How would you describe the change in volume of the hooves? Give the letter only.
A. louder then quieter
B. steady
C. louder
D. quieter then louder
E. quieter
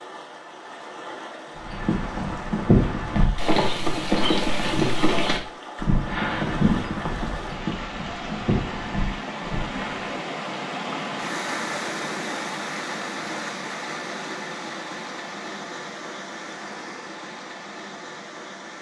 E.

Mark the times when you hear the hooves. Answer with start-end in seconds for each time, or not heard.
1.6-10.1.